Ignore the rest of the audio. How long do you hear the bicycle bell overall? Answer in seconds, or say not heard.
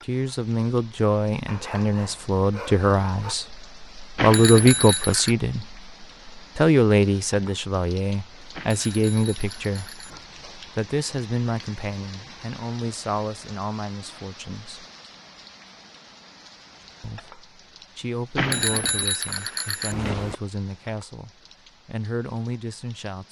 5 s.